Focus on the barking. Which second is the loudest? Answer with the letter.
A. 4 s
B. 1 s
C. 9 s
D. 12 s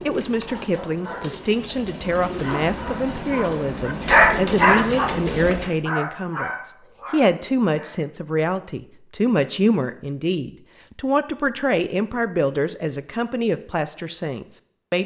A.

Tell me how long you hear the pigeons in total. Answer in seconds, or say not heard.
6 s.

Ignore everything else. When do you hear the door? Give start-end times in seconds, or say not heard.
not heard.